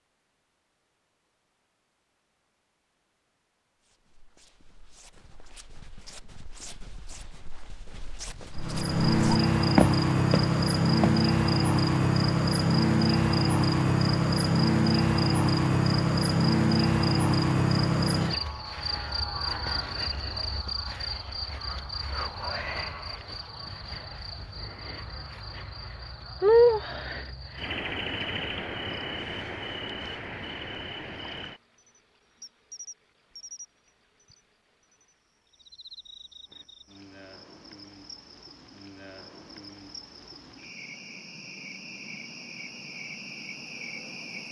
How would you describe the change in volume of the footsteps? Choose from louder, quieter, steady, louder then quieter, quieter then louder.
louder.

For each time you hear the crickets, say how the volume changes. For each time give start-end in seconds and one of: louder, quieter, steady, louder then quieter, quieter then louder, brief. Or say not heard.
8.6-44.4 quieter.